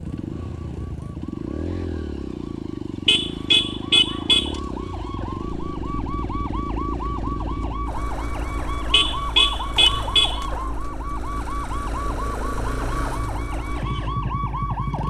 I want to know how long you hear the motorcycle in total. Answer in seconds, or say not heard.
15 s.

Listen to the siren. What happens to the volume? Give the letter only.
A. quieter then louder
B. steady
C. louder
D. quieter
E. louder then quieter
C.